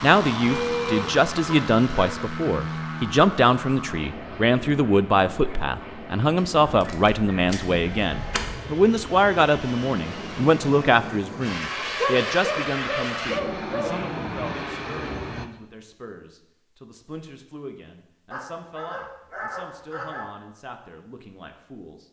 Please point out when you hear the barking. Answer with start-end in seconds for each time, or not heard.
0.5-2.1, 6.8-8.6, 12.0-13.9, 18.3-20.3.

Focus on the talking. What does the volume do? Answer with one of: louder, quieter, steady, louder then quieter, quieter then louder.
quieter.